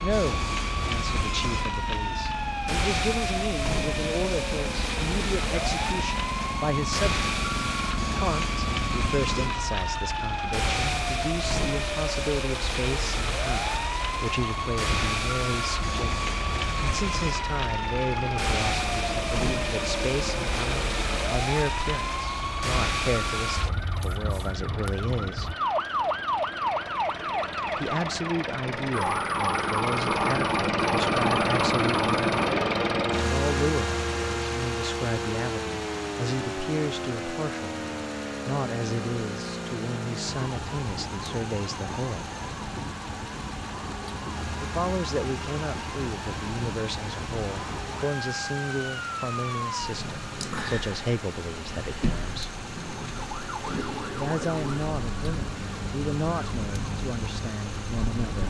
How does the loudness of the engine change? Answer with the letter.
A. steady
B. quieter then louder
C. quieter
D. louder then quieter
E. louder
D.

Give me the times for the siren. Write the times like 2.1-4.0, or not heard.
0.0-58.4.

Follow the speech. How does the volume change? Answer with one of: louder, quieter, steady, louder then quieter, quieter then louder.
steady.